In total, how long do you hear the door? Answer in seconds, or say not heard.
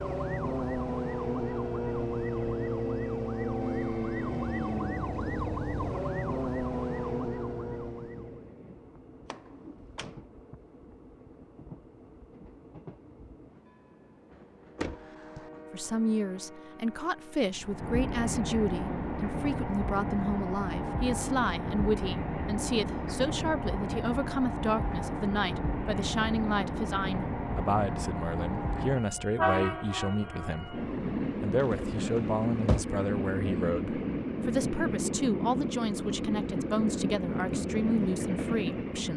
3 s.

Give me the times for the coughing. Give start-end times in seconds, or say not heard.
not heard.